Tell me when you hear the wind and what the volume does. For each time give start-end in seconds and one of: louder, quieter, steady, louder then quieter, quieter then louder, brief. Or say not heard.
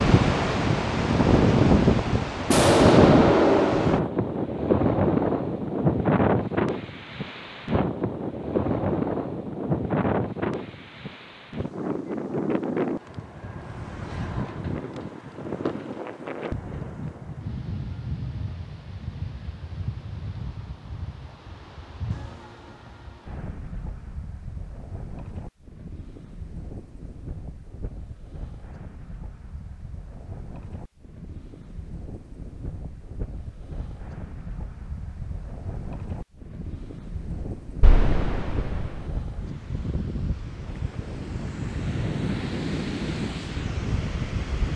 0.0-44.7 quieter then louder.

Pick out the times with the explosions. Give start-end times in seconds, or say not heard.
2.5-4.1, 37.8-39.0.